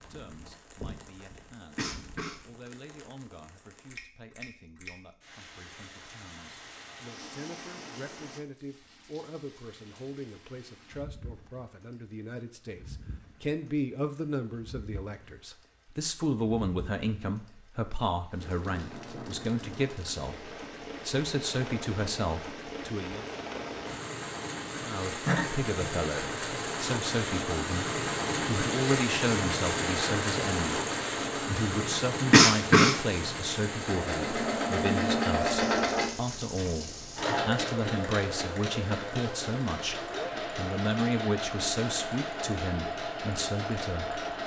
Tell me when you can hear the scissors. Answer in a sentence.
You can't hear the scissors here.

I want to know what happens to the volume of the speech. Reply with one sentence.
The volume of the speech goes up.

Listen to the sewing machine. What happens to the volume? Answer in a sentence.
The volume of the sewing machine goes down.